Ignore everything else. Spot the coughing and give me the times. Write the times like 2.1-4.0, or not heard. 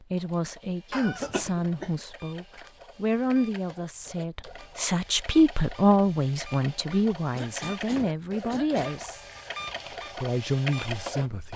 0.9-1.9, 7.3-9.0.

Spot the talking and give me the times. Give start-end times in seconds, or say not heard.
0.0-9.2, 10.2-11.5.